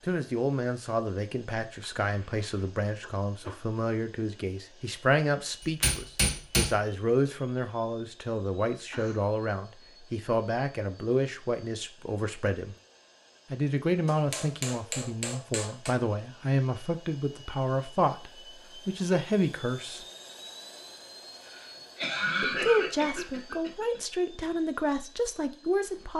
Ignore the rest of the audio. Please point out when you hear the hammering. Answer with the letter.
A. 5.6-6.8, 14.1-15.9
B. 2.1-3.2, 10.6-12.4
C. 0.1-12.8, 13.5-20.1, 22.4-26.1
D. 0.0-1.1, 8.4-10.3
A.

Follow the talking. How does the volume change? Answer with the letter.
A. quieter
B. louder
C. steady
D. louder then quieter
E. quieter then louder
C.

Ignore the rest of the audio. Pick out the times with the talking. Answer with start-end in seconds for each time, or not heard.
0.1-12.8, 13.5-20.1, 22.4-26.1.